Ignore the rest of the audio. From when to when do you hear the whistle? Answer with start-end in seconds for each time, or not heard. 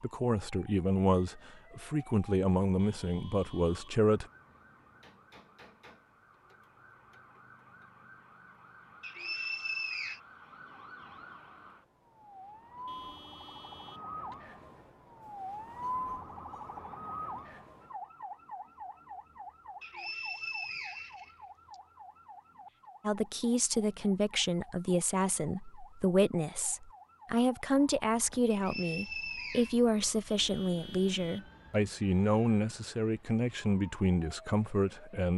9.0-10.2, 19.8-21.8, 28.5-29.8.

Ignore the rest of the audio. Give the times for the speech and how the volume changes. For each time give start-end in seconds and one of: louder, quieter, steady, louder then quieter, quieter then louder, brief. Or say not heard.
0.0-4.2 steady
23.1-35.3 steady.